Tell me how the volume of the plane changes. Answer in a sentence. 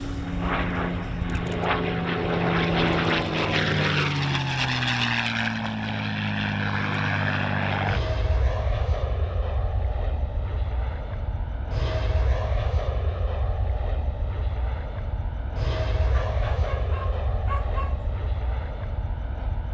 The volume of the plane goes down.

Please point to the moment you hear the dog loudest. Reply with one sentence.
The volume of the dog peaks at 18 seconds.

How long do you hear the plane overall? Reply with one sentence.
The plane can be heard for 20 seconds in total.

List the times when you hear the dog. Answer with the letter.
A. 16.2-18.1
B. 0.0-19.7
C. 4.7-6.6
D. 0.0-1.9
A.